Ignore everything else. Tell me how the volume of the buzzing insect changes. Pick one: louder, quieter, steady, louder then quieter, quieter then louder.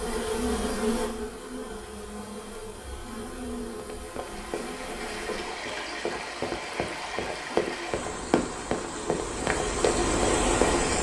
quieter.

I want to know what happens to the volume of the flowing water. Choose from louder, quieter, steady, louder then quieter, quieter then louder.
louder.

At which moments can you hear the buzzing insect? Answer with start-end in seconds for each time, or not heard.
0.0-5.6.